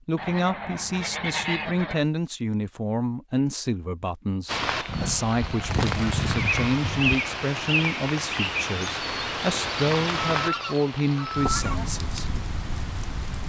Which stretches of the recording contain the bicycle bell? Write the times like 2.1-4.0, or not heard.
not heard.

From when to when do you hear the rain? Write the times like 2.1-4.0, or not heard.
4.5-13.4.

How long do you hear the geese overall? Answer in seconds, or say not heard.
6 s.